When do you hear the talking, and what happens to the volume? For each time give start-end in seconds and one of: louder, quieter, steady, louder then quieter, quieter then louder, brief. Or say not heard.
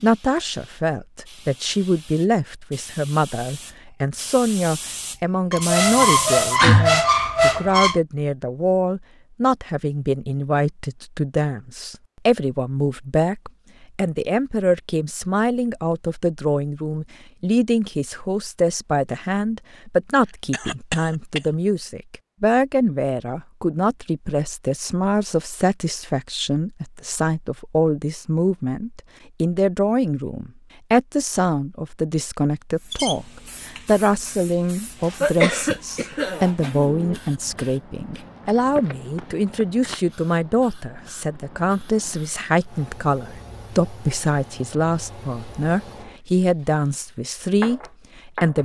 0.0-48.5 steady.